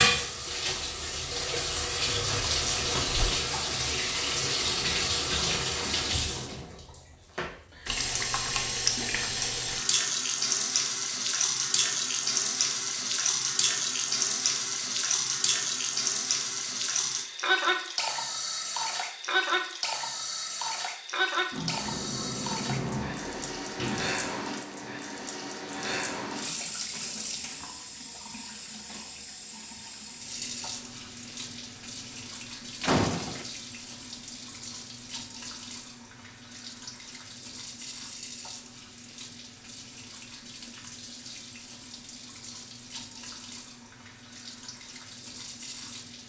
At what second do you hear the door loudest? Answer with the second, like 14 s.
33 s.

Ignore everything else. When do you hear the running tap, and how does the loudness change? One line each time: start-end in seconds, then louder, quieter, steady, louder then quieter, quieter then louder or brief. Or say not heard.
0.0-46.2 quieter.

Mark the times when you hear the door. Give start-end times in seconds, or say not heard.
2.0-3.3, 21.5-24.2, 32.8-33.5.